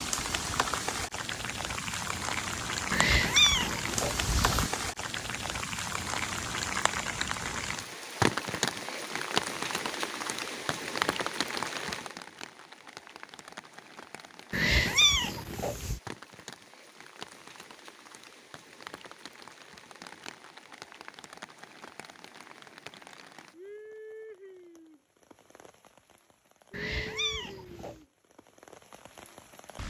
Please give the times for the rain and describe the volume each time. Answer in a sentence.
You can hear the rain from 0.0 to 29.8 s, getting quieter.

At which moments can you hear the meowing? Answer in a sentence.
You can hear the meowing from 2.9 to 4.7 s, from 14.5 to 16.0 s and from 26.7 to 28.0 s.